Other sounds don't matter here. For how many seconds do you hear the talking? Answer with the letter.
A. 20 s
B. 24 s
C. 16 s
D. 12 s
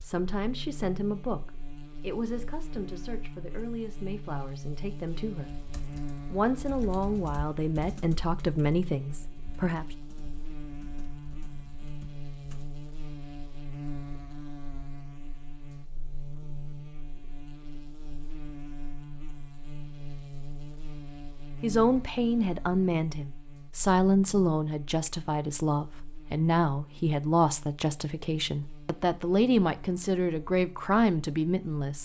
A.